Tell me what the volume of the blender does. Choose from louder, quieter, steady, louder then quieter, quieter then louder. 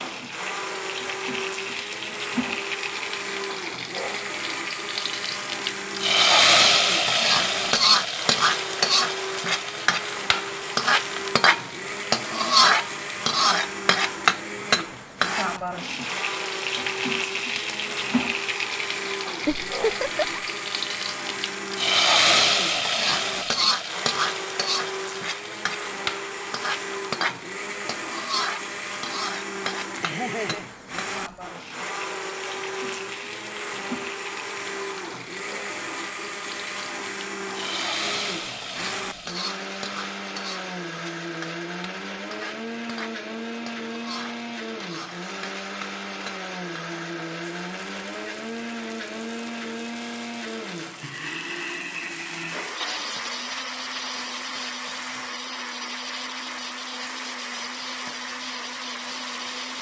steady.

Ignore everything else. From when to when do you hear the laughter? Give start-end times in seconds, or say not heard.
19.4-20.4, 30.0-30.7.